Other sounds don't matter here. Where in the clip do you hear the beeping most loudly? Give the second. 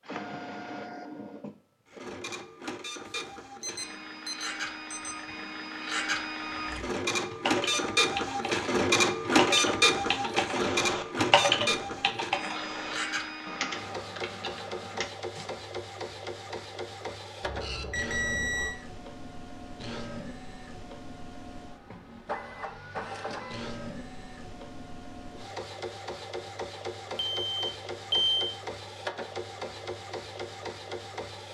28 s.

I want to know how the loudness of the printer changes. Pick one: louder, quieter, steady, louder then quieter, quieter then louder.
louder then quieter.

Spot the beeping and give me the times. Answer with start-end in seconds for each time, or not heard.
3.0-5.2, 17.4-18.8, 27.1-28.5.